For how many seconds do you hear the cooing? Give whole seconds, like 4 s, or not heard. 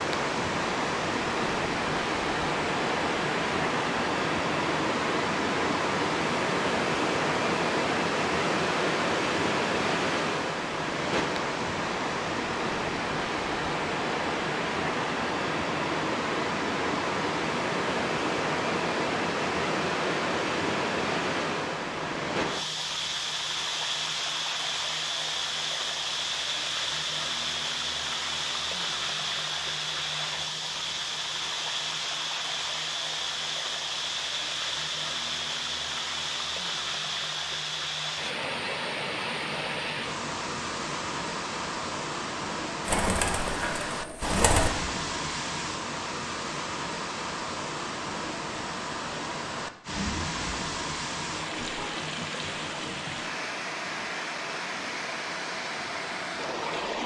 2 s.